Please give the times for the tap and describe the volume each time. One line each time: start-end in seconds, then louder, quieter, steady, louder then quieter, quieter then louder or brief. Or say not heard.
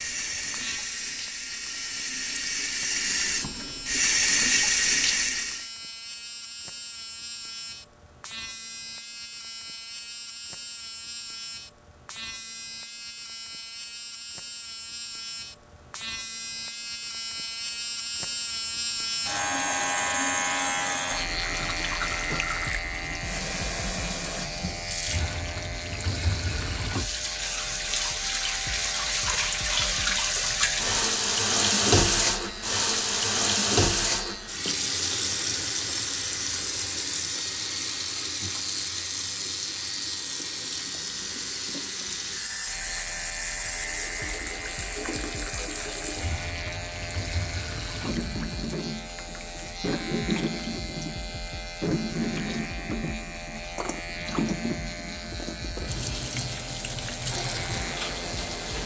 0.0-5.7 louder
21.0-58.8 louder then quieter.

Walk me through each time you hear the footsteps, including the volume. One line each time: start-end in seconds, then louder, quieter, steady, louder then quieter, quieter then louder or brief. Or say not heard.
not heard.